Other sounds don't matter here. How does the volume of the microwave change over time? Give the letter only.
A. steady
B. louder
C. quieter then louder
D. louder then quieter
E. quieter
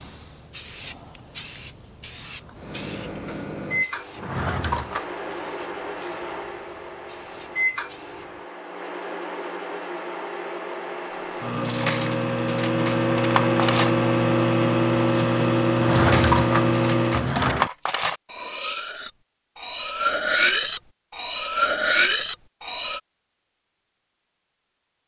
B.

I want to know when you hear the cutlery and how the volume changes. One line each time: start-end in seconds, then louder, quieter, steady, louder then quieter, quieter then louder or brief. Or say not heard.
11.3-23.0 quieter then louder.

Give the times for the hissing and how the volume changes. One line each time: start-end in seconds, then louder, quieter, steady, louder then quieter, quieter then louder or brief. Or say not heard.
0.0-8.3 quieter.